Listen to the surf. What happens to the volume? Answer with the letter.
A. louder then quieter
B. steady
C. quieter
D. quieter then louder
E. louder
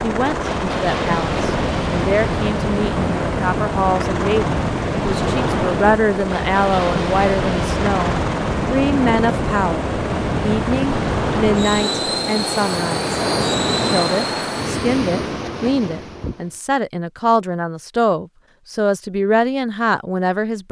B.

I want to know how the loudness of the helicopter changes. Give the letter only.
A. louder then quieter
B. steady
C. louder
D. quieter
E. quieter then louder
B.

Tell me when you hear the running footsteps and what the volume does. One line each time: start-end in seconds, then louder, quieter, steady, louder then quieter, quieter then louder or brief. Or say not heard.
not heard.